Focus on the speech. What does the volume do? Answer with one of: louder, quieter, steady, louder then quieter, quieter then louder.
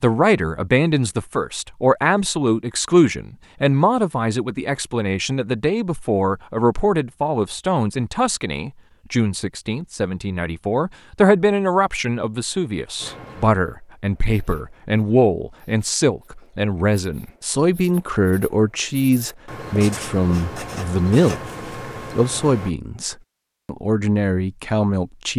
steady.